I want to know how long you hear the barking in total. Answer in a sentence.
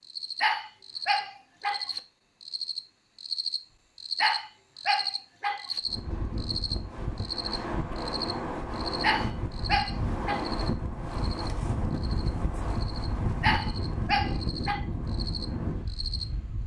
The barking can be heard for 6 seconds in total.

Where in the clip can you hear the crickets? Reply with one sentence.
The crickets can be heard from 0.0 to 16.6 s.